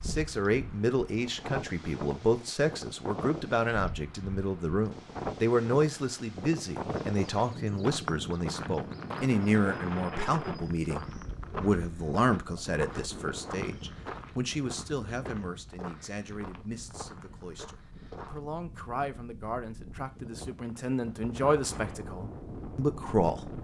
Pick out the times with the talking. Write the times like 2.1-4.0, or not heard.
0.0-23.5.